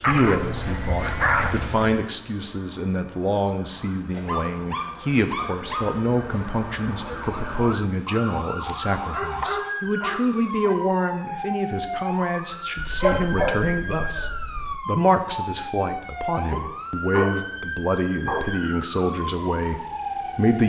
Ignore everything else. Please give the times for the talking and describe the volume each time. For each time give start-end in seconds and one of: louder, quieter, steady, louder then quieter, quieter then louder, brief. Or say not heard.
0.1-20.6 steady.